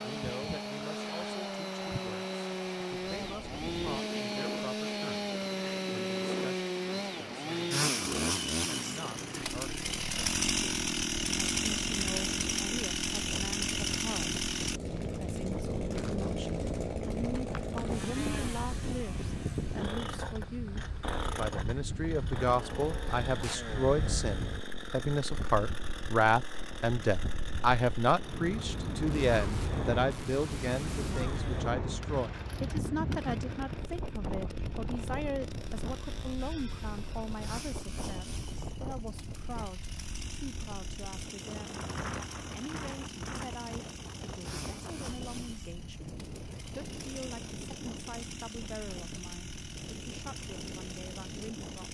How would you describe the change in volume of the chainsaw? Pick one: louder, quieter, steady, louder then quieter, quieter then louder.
quieter.